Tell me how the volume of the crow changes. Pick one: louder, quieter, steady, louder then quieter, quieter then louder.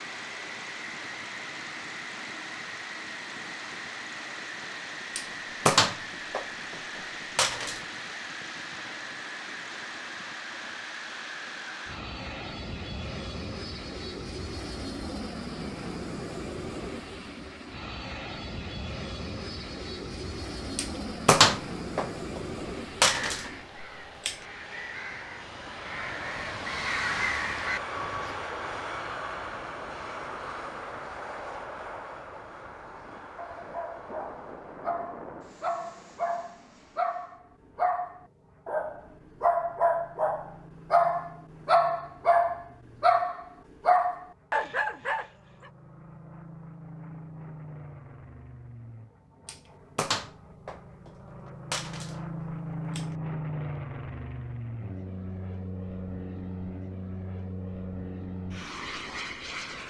louder.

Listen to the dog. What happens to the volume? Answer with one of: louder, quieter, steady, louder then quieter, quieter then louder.
louder.